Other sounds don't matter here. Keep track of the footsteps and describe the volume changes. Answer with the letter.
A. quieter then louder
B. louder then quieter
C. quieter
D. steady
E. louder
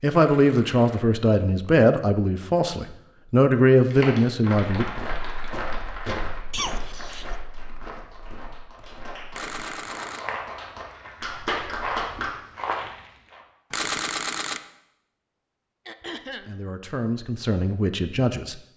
A.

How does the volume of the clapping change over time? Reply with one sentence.
The volume of the clapping goes down, then up.